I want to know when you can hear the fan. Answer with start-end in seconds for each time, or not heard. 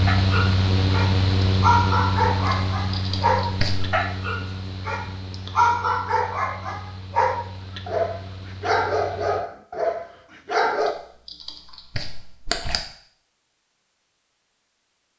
0.0-9.4.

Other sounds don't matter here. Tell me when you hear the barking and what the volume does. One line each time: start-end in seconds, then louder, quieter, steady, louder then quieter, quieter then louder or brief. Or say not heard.
0.1-10.9 steady.